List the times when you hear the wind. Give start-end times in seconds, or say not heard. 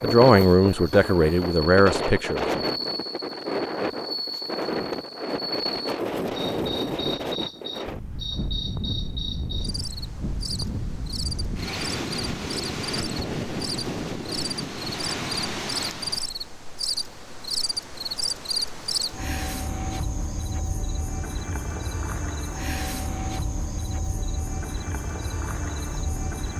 0.0-16.4.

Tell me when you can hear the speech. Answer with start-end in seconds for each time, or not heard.
0.0-2.6.